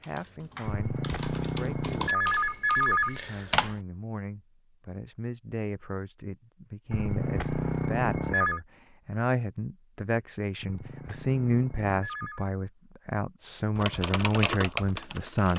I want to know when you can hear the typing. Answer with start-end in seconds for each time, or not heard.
0.0-3.8, 13.8-15.5.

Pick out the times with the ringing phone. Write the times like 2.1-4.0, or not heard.
0.7-3.2, 6.9-8.6, 10.6-12.4.